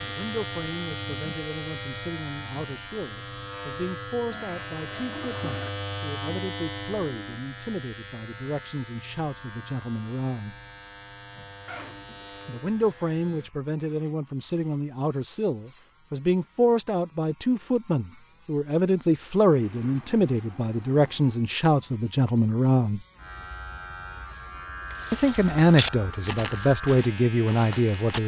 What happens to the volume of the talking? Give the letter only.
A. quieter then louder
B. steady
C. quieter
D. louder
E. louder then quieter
D.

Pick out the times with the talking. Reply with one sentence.
The talking can be heard from 0.0 to 10.6 s, from 12.4 to 23.0 s and from 25.1 to 28.2 s.